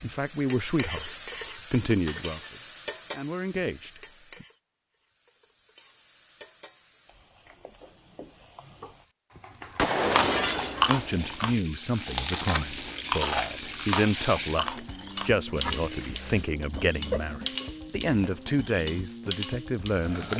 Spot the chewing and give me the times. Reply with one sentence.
You can hear the chewing from 10.1 to 18.6 s.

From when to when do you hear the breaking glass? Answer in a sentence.
The breaking glass can be heard from 2.0 to 2.5 s, from 9.3 to 11.3 s and from 15.7 to 16.5 s.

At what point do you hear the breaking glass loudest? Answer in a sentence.
The volume of the breaking glass peaks at 10 seconds.